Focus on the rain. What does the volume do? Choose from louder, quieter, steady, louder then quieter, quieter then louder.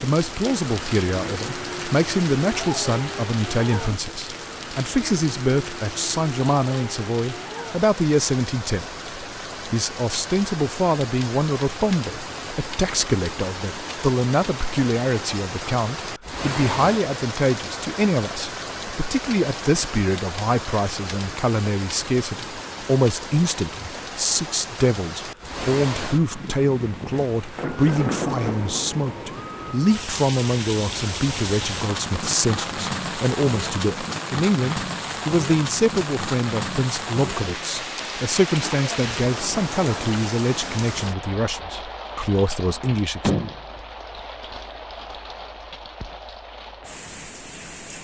steady.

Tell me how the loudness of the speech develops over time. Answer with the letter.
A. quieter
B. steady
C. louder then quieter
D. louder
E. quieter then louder
B.